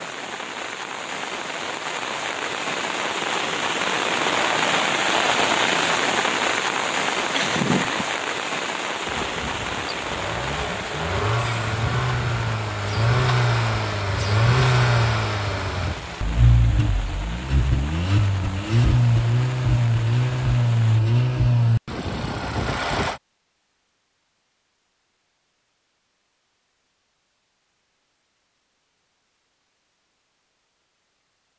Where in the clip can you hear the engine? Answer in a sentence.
You can hear the engine from 9.0 to 23.2 s.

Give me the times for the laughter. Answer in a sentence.
The laughter can be heard from 7.3 to 8.1 s.